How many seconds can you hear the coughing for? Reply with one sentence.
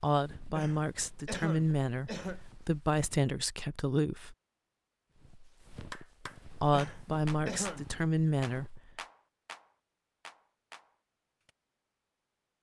You can hear the coughing for 3 seconds altogether.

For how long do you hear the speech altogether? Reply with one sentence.
You can hear the speech for 7 seconds altogether.